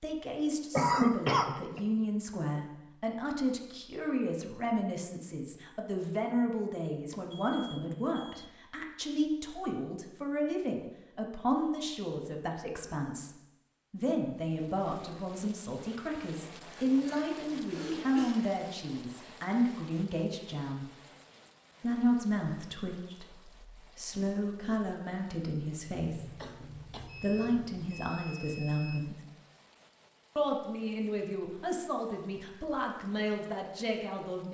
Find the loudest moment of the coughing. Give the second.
1 s.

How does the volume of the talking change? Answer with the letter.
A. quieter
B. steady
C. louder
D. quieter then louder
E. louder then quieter
B.